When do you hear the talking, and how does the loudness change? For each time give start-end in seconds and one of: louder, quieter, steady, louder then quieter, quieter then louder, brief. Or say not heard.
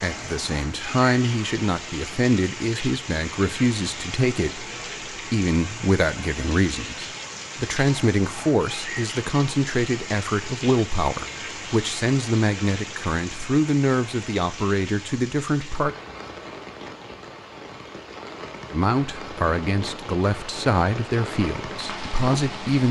0.0-15.9 steady
18.7-22.8 steady.